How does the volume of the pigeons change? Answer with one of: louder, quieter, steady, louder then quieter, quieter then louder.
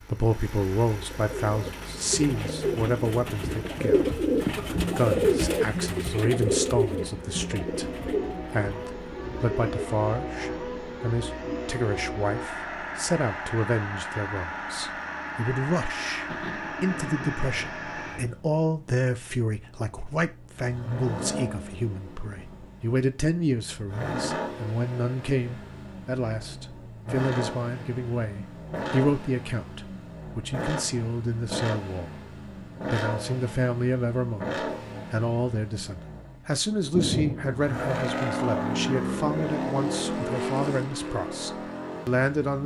louder then quieter.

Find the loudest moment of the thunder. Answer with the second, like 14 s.
37 s.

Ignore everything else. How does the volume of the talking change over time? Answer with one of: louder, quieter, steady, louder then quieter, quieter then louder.
steady.